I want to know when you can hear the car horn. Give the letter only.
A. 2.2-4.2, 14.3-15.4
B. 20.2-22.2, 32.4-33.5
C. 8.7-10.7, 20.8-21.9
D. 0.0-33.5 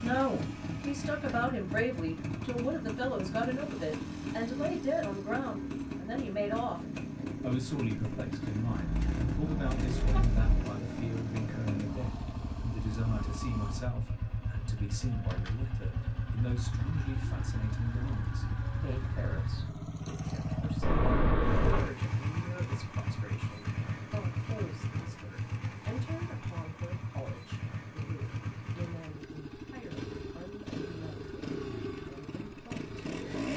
C.